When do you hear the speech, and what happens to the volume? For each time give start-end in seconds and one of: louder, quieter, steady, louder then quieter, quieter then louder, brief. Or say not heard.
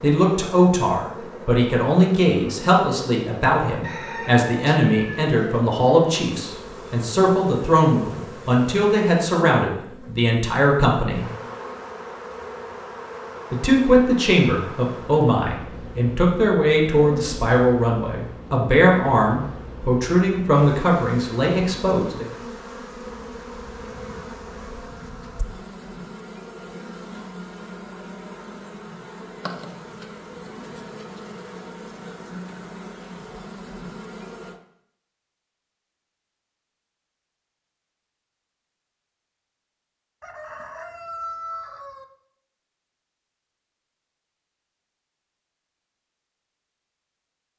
0.0-11.2 steady
13.5-22.2 steady.